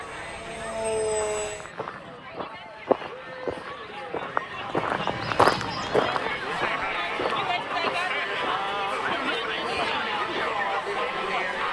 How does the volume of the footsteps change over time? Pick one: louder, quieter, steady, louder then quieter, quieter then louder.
louder then quieter.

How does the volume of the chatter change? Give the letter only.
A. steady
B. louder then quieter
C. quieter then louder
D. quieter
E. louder
E.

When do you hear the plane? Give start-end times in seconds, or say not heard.
0.0-1.7.